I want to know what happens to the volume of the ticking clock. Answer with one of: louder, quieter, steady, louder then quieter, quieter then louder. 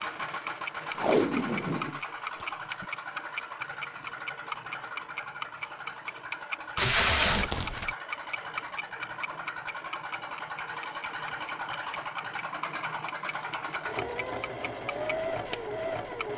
quieter.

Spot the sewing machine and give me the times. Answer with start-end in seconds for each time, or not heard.
0.0-16.3.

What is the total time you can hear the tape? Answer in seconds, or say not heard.
4 s.